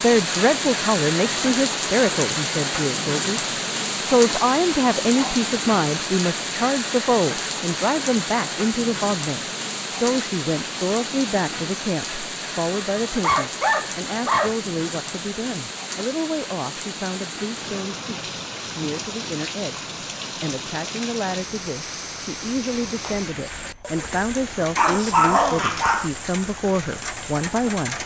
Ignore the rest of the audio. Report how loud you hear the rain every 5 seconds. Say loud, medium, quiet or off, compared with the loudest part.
loud, loud, medium, medium, medium, medium.